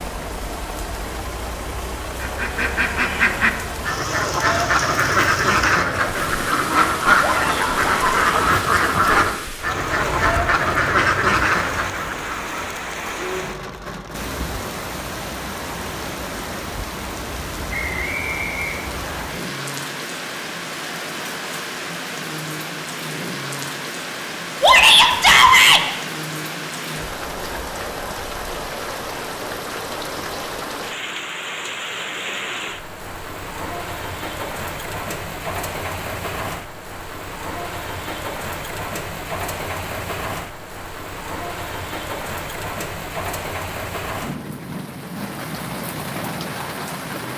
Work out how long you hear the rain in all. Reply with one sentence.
The rain can be heard for 47 seconds in total.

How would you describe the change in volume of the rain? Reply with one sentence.
The volume of the rain stays about the same.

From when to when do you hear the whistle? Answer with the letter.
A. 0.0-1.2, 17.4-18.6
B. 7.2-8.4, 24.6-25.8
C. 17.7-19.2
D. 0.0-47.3
C.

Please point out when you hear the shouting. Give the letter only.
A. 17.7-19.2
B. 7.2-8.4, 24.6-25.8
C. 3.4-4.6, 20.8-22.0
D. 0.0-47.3
B.